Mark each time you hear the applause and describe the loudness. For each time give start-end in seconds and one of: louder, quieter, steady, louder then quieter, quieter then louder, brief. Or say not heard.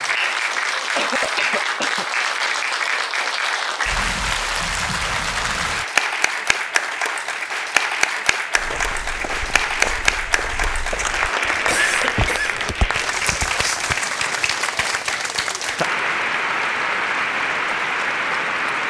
0.0-18.8 steady.